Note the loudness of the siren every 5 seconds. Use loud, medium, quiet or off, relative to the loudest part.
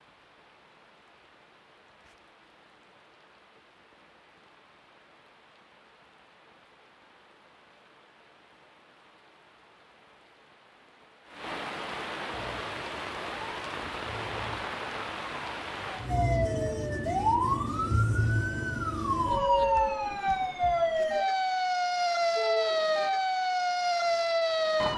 off, off, quiet, loud, loud.